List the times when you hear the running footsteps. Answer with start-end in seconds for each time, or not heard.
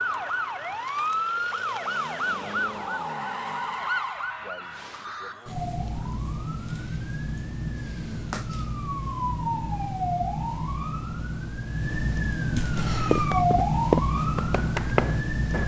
12.8-15.6.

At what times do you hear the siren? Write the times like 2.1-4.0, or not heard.
0.0-15.6.